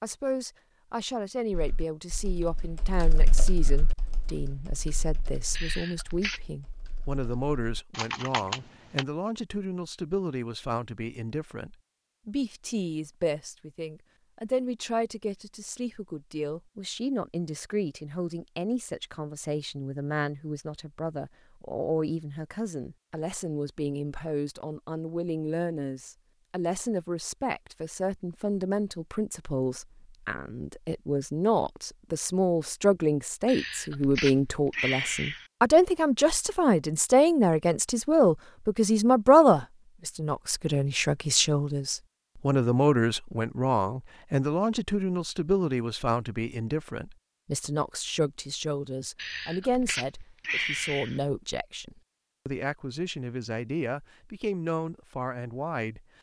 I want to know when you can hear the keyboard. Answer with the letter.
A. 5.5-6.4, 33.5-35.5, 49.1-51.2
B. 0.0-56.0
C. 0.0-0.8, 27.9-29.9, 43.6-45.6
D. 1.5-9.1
D.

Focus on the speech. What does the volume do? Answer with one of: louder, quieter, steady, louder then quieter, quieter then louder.
louder then quieter.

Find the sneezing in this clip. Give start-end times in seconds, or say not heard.
5.5-6.4, 33.5-35.5, 49.1-51.2.